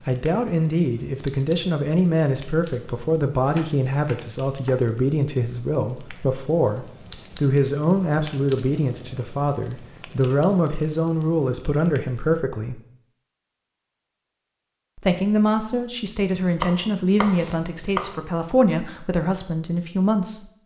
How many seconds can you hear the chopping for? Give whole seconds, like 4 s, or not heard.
3 s.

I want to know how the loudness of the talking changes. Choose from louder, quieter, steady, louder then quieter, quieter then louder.
steady.